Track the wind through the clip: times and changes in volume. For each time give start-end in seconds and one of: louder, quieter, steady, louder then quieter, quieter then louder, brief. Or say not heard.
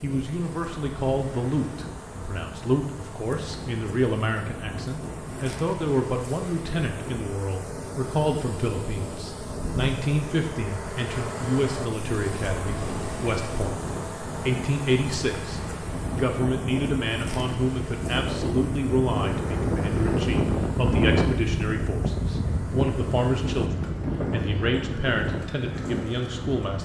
0.0-26.8 louder.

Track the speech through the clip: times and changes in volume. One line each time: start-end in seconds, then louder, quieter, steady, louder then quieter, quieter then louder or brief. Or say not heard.
0.0-26.8 steady.